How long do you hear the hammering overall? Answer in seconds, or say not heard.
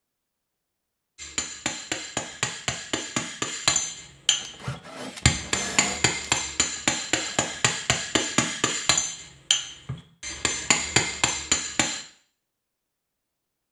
11 s.